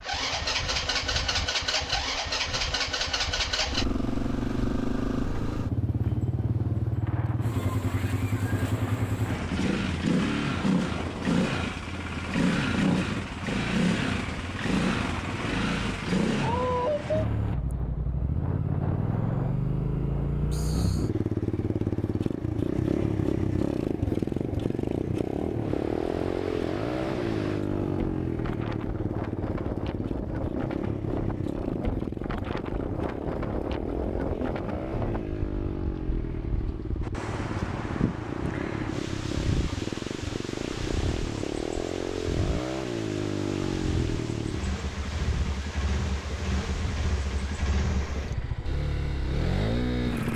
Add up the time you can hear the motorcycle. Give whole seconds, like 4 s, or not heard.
50 s.